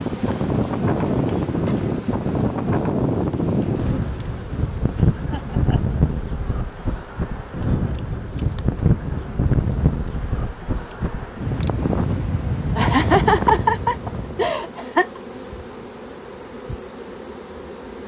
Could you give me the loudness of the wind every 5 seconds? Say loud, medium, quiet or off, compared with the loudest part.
loud, loud, loud, off.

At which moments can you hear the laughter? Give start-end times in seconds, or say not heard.
5.2-6.0, 12.8-15.2.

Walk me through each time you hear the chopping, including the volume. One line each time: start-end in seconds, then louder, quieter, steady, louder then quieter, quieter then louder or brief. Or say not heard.
not heard.